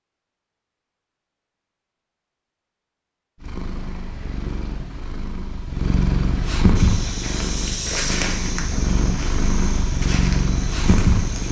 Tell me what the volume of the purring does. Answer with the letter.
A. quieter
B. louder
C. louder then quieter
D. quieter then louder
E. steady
B.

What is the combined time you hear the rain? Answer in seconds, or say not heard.
not heard.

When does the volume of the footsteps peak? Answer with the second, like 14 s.
8 s.